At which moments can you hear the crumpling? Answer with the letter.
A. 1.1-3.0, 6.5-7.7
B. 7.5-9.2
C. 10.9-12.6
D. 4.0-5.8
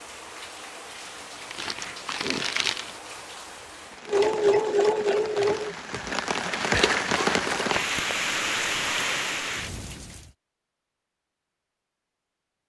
A.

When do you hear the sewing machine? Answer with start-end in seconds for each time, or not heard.
4.0-5.8.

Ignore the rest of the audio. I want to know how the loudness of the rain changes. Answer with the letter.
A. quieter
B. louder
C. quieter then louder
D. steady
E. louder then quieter
B.